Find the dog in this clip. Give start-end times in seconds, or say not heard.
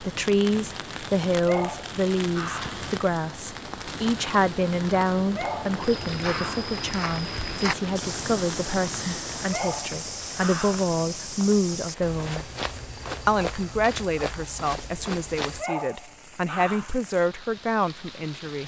1.4-2.8, 5.3-6.7, 9.5-10.9, 15.6-16.9.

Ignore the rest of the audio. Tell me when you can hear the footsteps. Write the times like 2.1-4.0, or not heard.
5.8-15.7.